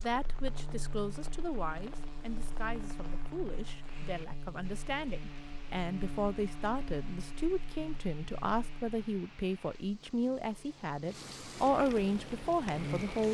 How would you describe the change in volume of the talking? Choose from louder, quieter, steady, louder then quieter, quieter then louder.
louder.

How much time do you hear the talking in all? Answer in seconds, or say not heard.
13 s.